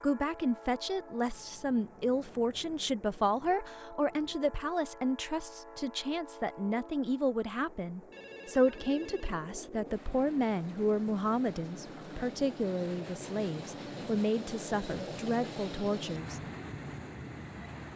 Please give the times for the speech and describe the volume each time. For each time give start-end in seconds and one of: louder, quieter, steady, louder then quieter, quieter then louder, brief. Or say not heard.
0.0-16.4 steady.